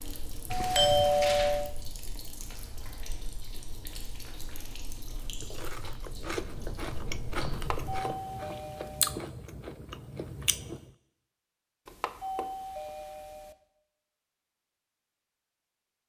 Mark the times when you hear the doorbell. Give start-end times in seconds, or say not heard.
0.5-1.7, 7.5-9.2, 11.8-13.6.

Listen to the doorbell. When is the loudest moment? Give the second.
1 s.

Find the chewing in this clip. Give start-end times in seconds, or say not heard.
5.2-10.9.